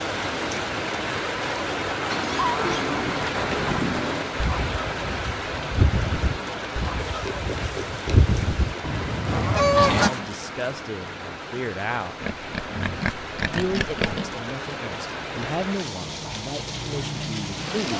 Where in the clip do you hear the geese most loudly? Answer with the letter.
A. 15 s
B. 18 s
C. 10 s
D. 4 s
C.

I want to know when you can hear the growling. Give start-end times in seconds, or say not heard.
9.8-10.6.